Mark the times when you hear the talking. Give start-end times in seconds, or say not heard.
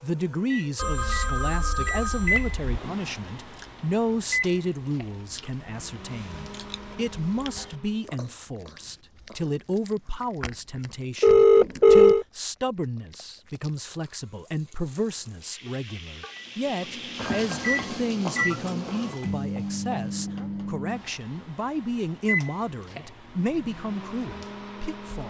0.0-25.2.